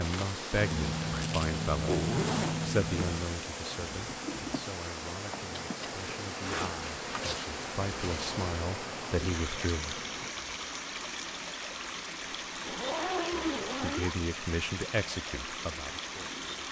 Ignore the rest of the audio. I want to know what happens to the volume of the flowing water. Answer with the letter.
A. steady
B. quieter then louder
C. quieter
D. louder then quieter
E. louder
A.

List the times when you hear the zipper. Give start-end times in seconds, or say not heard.
0.6-3.2, 6.4-8.4, 12.6-14.2.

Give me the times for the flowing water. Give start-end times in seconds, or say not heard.
0.0-16.6.